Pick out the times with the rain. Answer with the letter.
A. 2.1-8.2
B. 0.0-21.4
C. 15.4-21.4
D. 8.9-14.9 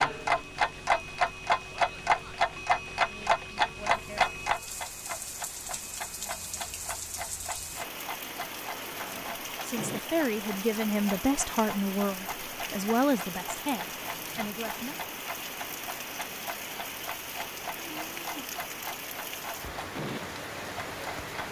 B.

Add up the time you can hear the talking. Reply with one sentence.
The talking can be heard for 6 seconds in total.